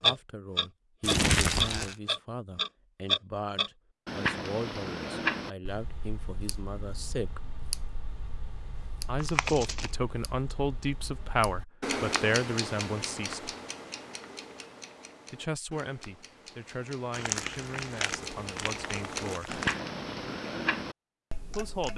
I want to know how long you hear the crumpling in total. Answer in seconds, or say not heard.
4 s.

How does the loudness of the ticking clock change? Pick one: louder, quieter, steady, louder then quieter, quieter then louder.
quieter then louder.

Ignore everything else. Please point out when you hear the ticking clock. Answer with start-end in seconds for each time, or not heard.
0.0-21.9.